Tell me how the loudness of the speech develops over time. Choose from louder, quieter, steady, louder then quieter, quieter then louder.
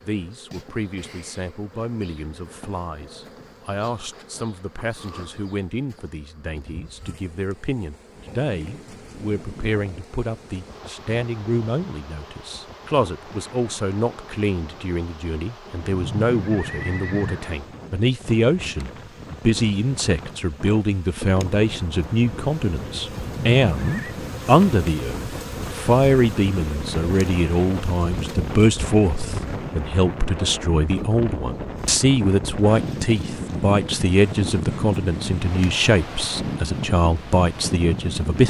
louder.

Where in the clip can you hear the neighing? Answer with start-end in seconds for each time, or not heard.
15.9-17.4, 23.1-24.1.